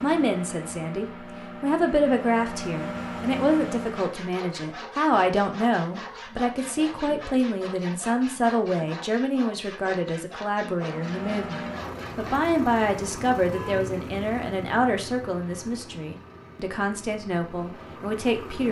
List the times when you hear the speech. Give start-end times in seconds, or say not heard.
0.0-18.6.